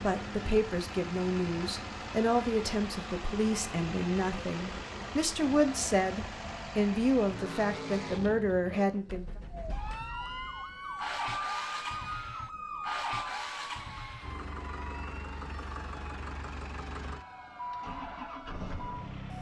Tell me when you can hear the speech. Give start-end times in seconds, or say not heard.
0.0-9.2.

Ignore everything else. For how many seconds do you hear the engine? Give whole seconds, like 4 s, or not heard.
19 s.